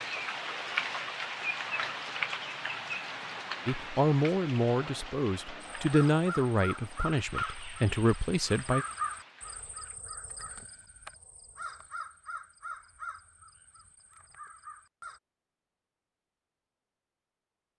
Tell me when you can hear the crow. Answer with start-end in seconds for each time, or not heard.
5.8-15.2.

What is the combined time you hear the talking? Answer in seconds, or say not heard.
5 s.